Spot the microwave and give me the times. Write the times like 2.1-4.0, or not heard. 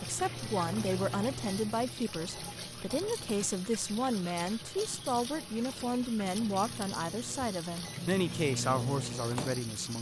0.0-3.4, 6.2-9.7.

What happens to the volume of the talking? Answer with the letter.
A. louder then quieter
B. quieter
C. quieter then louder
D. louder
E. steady
E.